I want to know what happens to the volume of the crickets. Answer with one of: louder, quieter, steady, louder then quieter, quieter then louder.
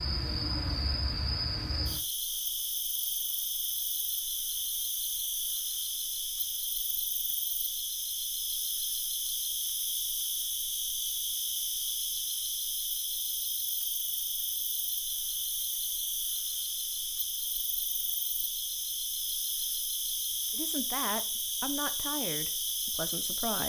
steady.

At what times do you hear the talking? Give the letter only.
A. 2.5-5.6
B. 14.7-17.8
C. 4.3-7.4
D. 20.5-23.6
D.